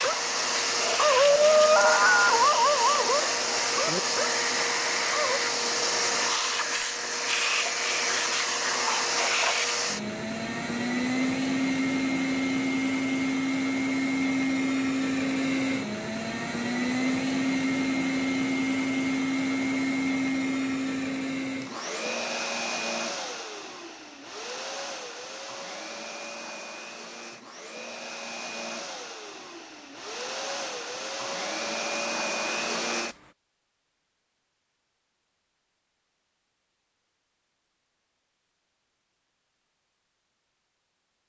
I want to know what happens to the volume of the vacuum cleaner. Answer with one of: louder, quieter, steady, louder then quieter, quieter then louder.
quieter.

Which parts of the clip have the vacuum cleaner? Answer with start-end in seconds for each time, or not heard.
0.0-33.3.